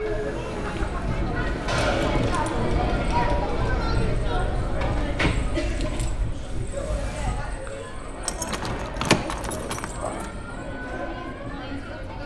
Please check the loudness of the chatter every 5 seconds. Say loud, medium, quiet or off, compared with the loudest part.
loud, medium, medium.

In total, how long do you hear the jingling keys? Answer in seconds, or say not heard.
4 s.